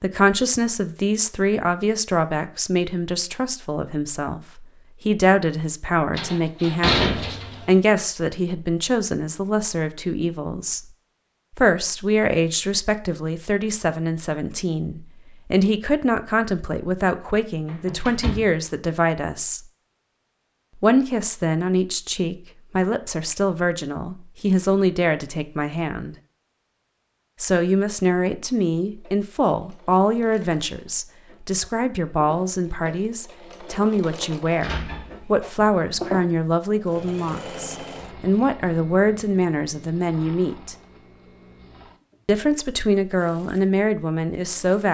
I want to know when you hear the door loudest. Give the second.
7 s.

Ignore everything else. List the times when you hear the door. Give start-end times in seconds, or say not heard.
6.2-7.8, 17.6-18.6, 34.6-35.7.